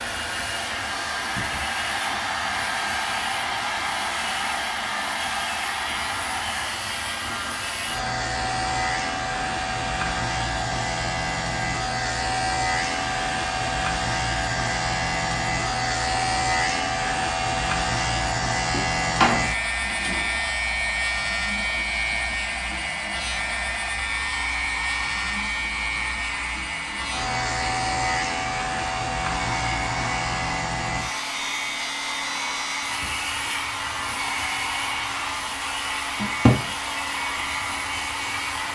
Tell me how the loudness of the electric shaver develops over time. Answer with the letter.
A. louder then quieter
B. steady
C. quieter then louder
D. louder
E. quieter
A.